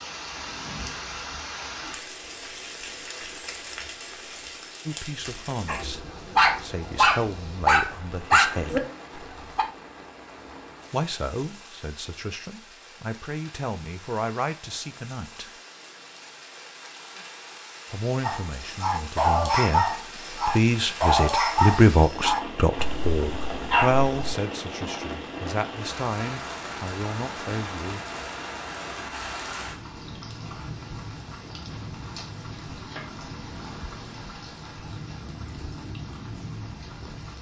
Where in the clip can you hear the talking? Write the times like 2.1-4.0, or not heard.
4.8-8.8, 10.9-15.5, 17.9-28.0.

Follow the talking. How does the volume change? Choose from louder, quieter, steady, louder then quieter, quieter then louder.
louder then quieter.